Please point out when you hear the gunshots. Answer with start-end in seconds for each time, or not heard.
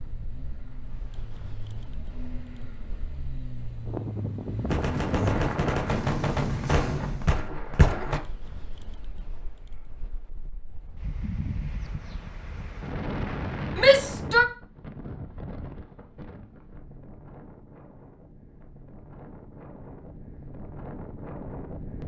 4.7-8.2.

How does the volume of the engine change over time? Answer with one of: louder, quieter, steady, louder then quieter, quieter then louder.
louder.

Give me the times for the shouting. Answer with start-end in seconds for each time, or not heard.
13.8-14.4.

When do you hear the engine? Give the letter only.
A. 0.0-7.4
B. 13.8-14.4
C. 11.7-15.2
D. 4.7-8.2
A.